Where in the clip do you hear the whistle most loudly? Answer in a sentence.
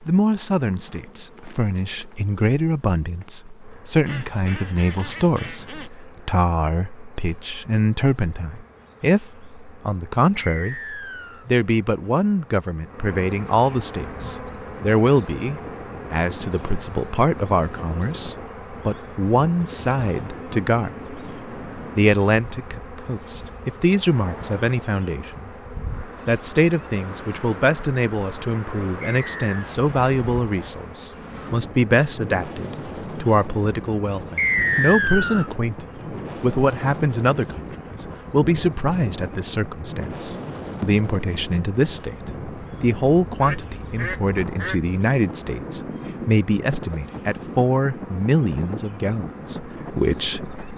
The volume of the whistle peaks at 35 seconds.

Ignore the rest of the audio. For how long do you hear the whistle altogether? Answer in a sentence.
You can hear the whistle for 3 seconds altogether.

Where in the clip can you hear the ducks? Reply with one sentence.
You can hear the ducks from 4.0 to 5.9 s and from 43.4 to 44.9 s.